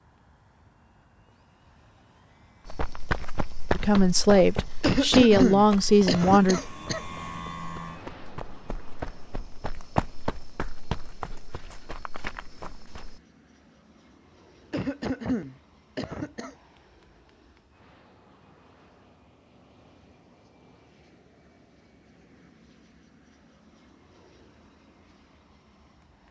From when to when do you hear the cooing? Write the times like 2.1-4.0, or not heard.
not heard.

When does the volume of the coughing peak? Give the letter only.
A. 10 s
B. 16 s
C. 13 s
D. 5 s
D.